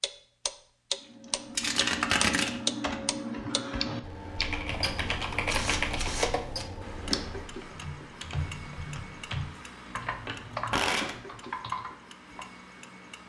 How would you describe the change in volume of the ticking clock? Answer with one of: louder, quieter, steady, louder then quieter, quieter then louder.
quieter.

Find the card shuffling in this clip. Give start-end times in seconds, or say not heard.
1.6-2.5, 5.5-6.7, 9.9-11.2.